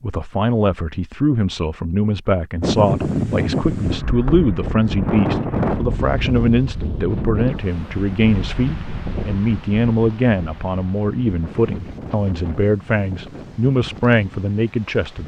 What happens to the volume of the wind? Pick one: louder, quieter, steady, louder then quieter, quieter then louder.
quieter.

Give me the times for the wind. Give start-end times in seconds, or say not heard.
2.6-15.2.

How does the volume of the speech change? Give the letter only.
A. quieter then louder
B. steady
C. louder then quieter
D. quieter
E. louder
B.